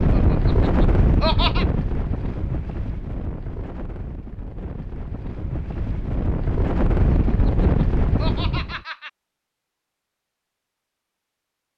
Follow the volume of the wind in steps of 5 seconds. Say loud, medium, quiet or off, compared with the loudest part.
loud, loud, off.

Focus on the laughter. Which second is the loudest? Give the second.
1 s.